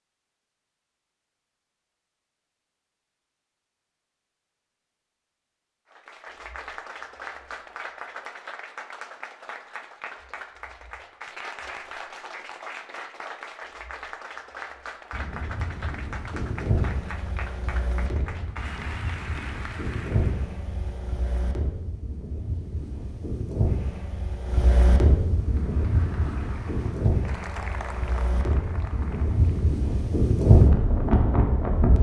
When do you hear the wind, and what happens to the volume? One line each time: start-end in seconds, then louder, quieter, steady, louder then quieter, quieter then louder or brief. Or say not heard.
15.1-31.9 louder.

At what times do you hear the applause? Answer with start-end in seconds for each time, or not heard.
5.9-20.5, 25.2-29.8.